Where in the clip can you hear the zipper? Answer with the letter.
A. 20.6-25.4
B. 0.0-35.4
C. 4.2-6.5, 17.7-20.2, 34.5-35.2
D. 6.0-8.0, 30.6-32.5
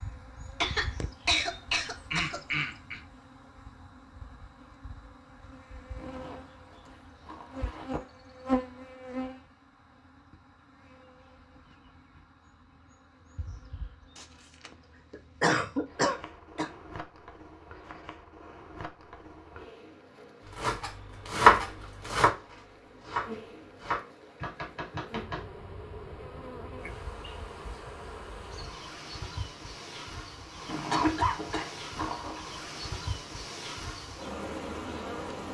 D.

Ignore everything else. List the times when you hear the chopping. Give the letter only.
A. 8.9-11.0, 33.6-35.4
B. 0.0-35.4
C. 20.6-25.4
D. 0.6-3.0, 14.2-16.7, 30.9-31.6
C.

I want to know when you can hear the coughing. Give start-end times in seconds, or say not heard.
0.6-3.0, 14.2-16.7, 30.9-31.6.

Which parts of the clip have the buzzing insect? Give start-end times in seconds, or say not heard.
0.0-35.4.